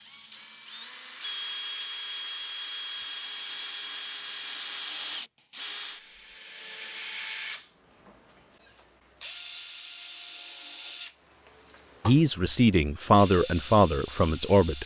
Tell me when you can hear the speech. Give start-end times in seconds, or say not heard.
12.1-14.8.